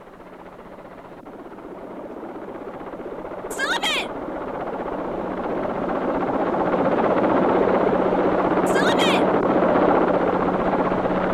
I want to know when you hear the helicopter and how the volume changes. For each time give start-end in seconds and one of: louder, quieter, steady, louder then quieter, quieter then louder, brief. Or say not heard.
0.0-11.2 louder.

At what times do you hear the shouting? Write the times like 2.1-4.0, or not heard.
3.5-4.1, 8.7-9.2.